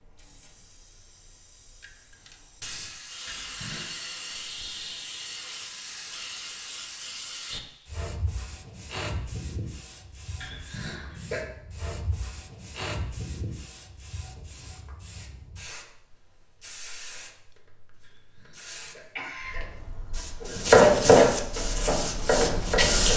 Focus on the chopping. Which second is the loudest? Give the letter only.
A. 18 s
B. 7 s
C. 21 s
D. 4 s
C.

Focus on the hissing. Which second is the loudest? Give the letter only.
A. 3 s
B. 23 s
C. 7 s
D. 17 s
B.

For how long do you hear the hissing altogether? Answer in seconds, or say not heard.
23 s.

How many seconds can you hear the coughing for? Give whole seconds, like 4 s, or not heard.
3 s.